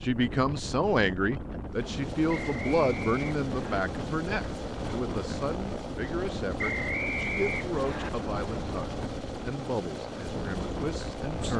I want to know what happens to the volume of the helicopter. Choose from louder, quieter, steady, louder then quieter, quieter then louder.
steady.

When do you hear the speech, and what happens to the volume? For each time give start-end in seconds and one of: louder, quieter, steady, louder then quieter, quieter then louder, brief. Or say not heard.
0.0-11.5 quieter.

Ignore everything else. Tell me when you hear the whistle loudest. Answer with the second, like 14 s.
7 s.